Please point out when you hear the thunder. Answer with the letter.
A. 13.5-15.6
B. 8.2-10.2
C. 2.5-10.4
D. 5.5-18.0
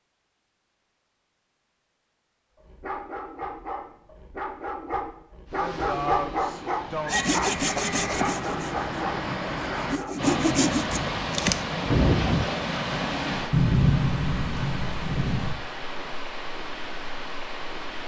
A.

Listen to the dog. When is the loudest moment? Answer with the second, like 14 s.
6 s.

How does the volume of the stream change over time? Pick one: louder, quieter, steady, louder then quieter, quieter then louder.
louder then quieter.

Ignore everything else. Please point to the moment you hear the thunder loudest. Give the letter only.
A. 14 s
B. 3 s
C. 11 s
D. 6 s
A.